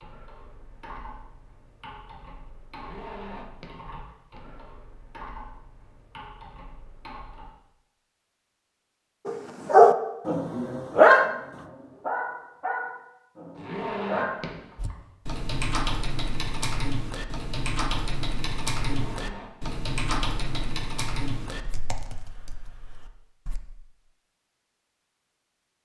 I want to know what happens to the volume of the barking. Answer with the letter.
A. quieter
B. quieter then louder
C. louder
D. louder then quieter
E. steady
A.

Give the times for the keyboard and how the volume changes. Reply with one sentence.
You can hear the keyboard from 0.0 to 7.5 s, at a steady volume; and from 14.8 to 23.6 s, getting quieter.